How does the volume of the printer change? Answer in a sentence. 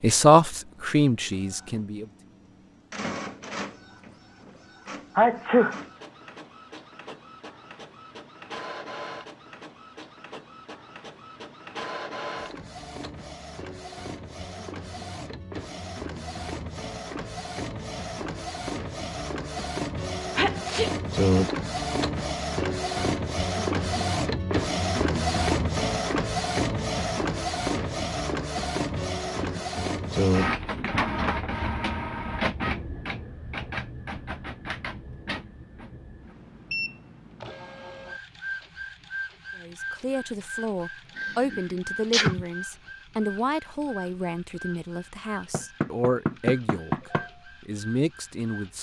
The volume of the printer goes up, then down.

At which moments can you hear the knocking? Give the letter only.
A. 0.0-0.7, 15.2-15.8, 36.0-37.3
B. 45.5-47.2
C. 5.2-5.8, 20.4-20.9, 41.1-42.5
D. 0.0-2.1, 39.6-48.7
B.